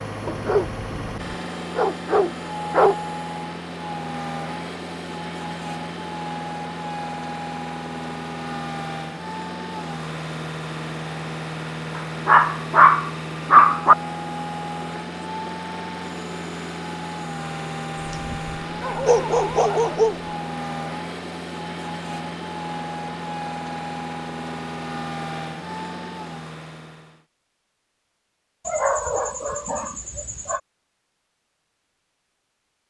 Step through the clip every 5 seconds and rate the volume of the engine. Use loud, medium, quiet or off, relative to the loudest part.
loud, loud, loud, loud, loud, loud, off.